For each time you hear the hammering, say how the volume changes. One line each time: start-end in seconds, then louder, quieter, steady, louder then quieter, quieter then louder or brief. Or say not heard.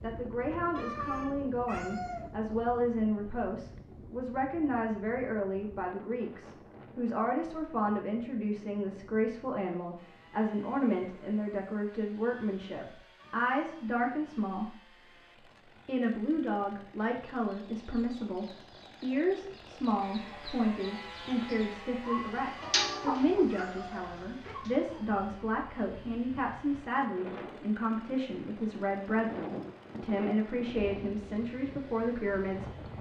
not heard.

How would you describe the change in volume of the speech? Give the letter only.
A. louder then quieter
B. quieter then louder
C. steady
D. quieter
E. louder
C.